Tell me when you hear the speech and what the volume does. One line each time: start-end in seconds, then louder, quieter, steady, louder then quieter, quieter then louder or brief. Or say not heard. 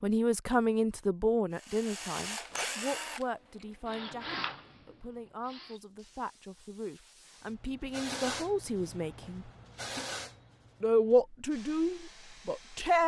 0.0-9.5 quieter then louder
10.8-13.0 brief.